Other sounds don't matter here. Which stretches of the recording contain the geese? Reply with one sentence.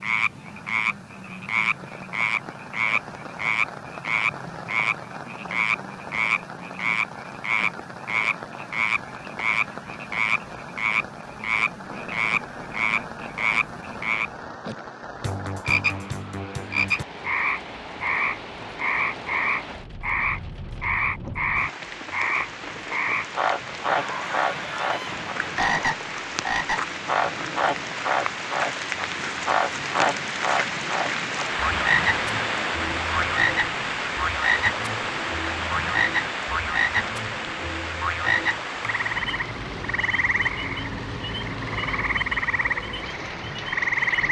The geese can be heard from 23.9 to 25.9 s.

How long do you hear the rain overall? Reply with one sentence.
The rain can be heard for 44 seconds in total.